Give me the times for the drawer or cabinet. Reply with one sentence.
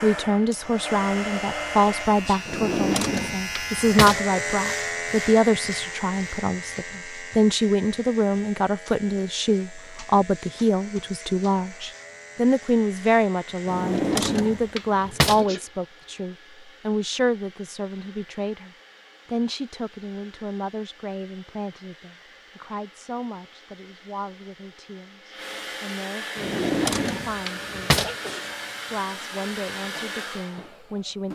You can hear the drawer or cabinet from 2.5 to 4.2 s, from 13.7 to 15.4 s and from 26.4 to 28.1 s.